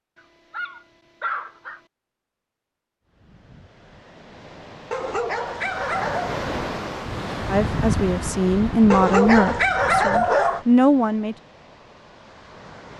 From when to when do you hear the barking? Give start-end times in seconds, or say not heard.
0.1-1.8, 4.9-6.4, 8.9-10.7.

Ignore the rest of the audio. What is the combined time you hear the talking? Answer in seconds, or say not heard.
4 s.